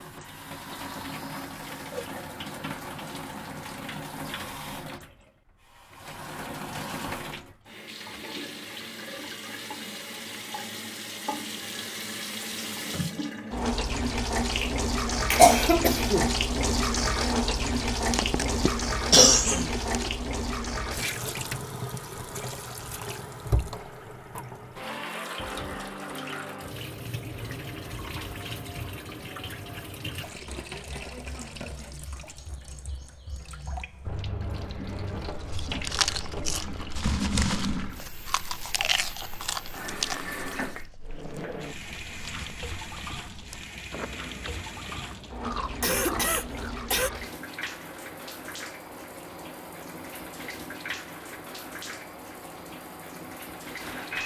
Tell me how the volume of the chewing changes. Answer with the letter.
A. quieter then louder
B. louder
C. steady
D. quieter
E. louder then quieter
D.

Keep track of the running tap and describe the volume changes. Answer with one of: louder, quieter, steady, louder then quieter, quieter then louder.
louder then quieter.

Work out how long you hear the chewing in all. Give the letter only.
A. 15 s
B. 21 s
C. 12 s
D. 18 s
C.